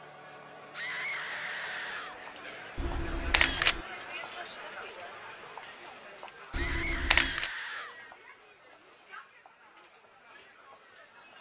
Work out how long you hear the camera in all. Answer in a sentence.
The camera can be heard for 2 seconds in total.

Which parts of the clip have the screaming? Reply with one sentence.
You can hear the screaming from 0.7 to 2.2 s and from 6.5 to 8.0 s.